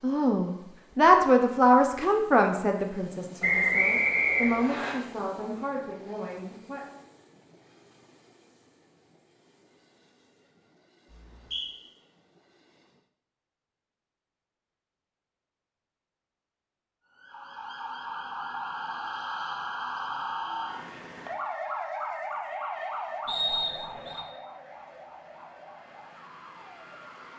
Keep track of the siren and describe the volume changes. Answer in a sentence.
The volume of the siren goes down.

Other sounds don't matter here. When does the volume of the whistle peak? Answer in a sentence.
The volume of the whistle peaks at 4 seconds.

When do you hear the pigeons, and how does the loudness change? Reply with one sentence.
You can't hear the pigeons here.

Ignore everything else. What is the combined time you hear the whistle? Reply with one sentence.
You can hear the whistle for 3 seconds altogether.